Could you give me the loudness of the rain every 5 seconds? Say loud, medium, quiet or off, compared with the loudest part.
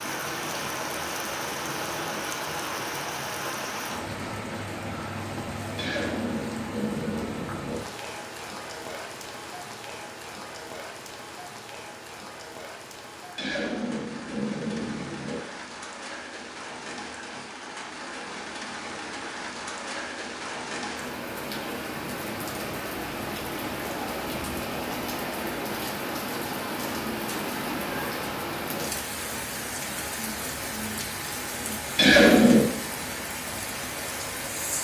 loud, medium, medium, medium, loud, loud, loud.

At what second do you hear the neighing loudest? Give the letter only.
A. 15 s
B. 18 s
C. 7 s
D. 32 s
D.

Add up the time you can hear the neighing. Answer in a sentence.
You can hear the neighing for 5 seconds altogether.